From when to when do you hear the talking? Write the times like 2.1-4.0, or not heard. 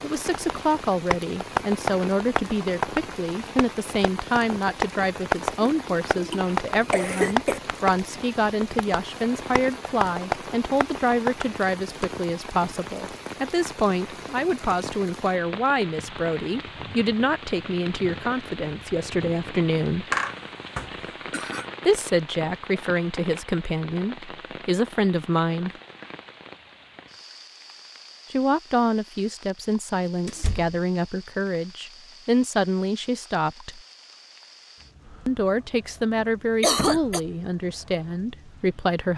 0.0-20.1, 21.9-25.7, 28.3-33.8, 35.2-39.1.